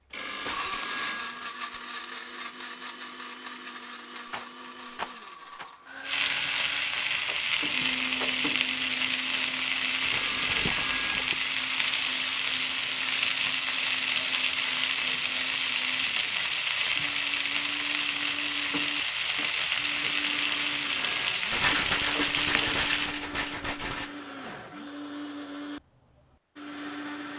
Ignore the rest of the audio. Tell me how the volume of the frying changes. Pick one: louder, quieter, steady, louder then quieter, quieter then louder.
steady.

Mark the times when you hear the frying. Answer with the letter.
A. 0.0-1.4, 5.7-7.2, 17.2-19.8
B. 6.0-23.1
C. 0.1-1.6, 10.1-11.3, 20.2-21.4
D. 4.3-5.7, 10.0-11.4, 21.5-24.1
B.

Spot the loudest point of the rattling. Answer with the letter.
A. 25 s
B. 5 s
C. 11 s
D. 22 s
D.